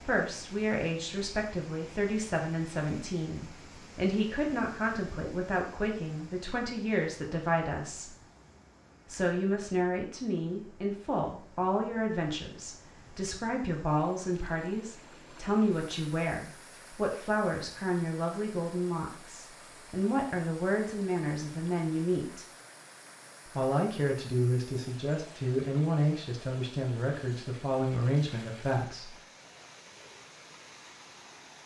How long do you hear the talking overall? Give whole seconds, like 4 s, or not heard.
27 s.